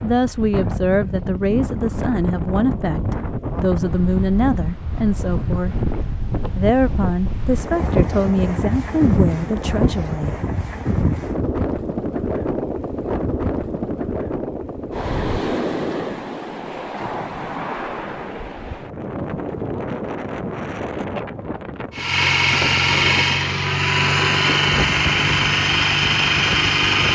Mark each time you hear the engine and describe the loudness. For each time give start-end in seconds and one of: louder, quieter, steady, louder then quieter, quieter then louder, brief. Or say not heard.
21.9-27.0 steady.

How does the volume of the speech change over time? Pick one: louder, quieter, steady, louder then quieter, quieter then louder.
steady.